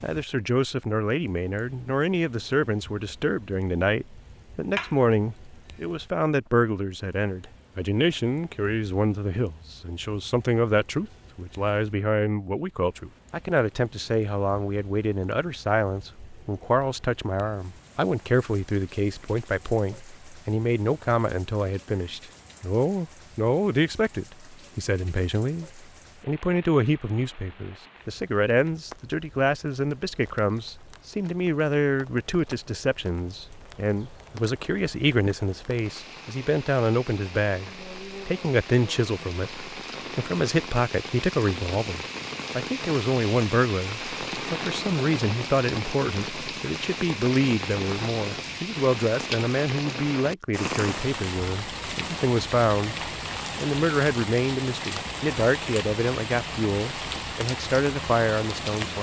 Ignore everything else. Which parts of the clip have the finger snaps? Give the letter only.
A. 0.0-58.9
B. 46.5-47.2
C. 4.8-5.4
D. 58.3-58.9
C.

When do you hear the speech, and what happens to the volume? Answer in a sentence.
The speech can be heard from 0.0 to 58.9 s, at a steady volume.